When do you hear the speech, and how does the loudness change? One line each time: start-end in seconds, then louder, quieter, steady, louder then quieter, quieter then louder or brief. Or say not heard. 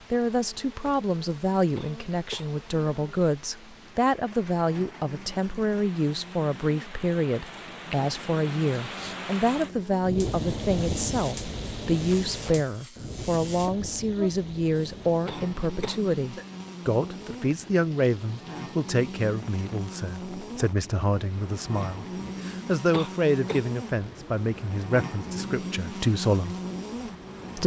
0.1-26.6 steady.